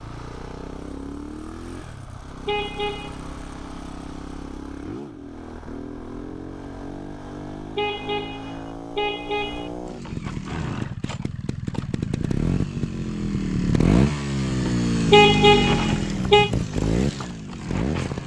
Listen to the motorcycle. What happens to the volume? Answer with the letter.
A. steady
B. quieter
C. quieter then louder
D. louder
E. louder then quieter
D.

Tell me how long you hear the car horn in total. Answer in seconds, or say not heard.
4 s.